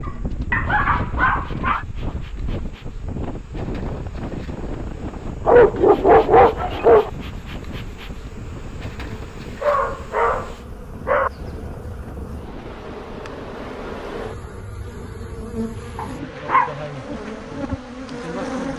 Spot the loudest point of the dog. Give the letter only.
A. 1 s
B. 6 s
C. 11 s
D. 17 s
B.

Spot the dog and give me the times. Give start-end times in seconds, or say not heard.
0.1-1.9, 5.5-7.1, 9.6-11.3, 15.9-16.7.